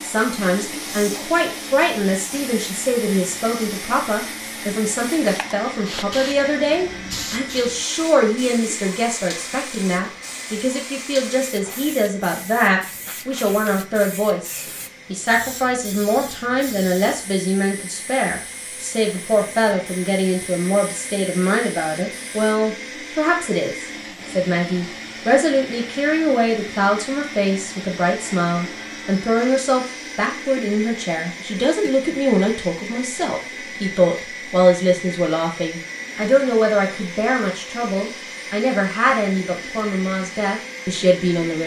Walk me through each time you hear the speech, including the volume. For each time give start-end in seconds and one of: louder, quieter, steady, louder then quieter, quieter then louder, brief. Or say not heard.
0.0-41.6 steady.